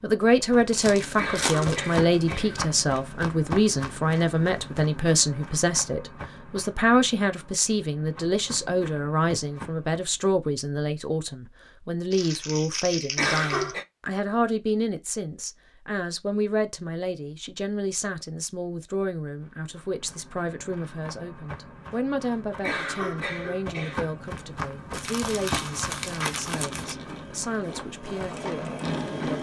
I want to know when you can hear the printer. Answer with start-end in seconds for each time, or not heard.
26.5-29.3.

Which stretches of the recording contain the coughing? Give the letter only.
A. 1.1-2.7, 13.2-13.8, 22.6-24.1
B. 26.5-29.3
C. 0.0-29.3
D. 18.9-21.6
A.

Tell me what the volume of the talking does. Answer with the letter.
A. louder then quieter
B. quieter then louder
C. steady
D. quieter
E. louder
D.